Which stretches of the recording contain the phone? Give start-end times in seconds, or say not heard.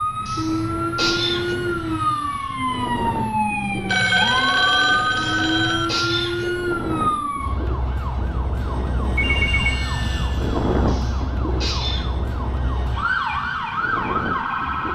3.9-5.8, 9.2-9.8.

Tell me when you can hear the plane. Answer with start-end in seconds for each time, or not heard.
0.0-14.9.